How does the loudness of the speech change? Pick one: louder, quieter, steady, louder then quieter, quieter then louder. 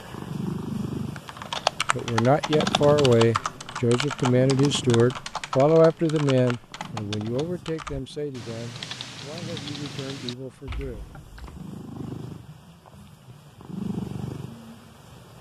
quieter.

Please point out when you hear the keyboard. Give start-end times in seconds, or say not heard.
1.1-11.7.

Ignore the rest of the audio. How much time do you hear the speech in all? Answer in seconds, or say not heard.
9 s.